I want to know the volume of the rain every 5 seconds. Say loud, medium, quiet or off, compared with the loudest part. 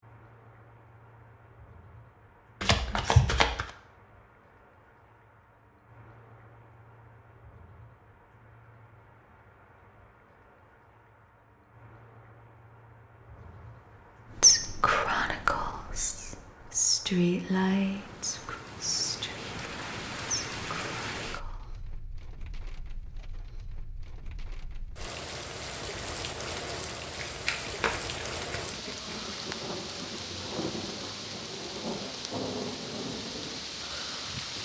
quiet, quiet, quiet, medium, medium, loud, loud.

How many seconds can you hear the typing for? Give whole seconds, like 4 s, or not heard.
not heard.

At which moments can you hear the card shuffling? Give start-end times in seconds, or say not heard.
2.6-3.7, 27.1-29.4.